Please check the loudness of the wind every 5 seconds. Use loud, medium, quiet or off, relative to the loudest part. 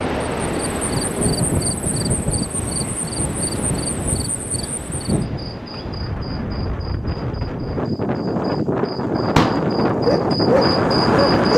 medium, medium, loud.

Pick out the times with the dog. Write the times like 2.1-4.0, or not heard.
9.9-11.5.